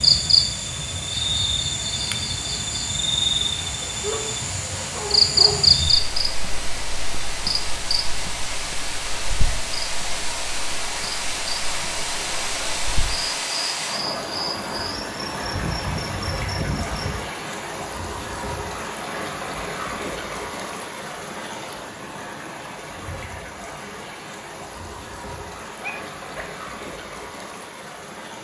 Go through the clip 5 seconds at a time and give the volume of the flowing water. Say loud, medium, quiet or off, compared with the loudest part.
medium, loud, loud, loud, medium, medium.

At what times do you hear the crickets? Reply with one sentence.
You can hear the crickets from 0.0 to 17.2 s.